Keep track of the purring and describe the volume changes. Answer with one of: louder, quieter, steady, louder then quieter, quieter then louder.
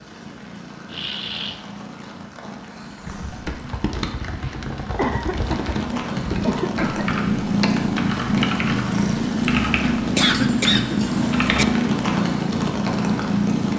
louder.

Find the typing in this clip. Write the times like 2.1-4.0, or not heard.
3.0-11.8.